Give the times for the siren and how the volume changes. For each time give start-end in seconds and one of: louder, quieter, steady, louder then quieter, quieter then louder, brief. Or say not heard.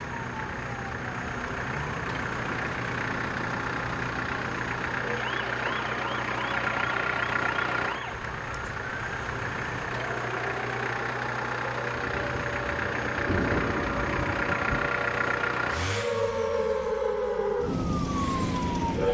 0.0-19.0 louder.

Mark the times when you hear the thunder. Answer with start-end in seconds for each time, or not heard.
11.9-14.9.